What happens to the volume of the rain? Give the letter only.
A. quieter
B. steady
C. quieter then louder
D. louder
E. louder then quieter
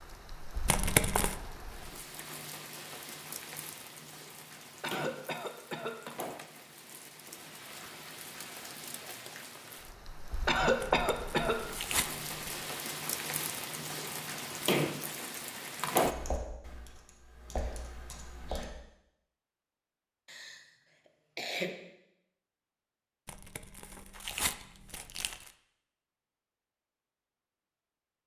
D.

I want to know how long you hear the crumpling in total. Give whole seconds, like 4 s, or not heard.
5 s.